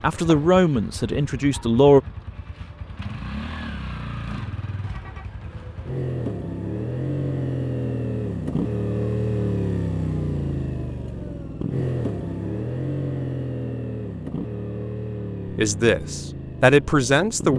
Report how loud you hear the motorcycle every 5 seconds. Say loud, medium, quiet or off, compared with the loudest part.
medium, loud, loud, medium.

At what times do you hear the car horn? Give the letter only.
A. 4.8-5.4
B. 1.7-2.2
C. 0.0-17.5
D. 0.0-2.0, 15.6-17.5
A.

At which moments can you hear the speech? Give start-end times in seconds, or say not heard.
0.0-2.0, 15.6-17.5.